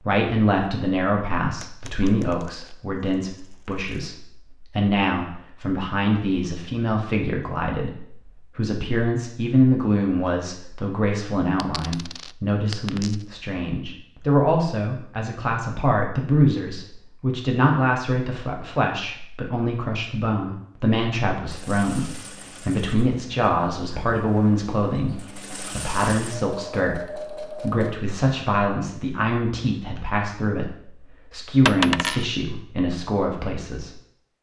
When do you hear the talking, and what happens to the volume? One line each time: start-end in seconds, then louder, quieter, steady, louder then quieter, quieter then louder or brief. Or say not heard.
0.0-34.0 steady.